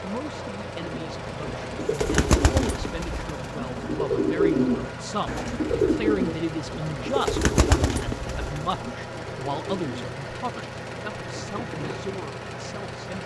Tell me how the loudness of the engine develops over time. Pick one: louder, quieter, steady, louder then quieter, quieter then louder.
steady.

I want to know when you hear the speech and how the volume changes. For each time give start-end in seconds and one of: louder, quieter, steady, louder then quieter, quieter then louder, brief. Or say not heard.
0.0-13.2 louder then quieter.